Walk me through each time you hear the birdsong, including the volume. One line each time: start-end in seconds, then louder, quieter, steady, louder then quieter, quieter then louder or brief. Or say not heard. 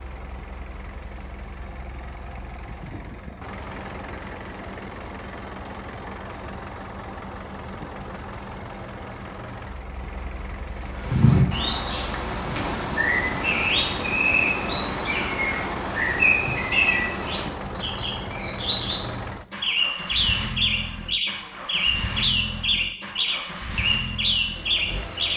10.8-25.3 steady.